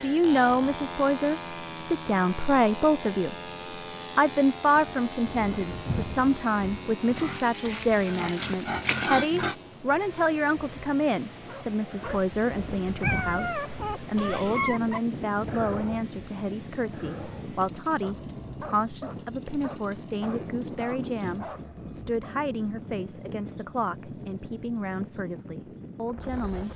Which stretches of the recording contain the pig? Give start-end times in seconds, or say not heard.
7.2-9.6.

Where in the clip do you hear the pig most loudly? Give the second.
9 s.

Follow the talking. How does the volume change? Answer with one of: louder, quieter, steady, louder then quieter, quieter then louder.
quieter.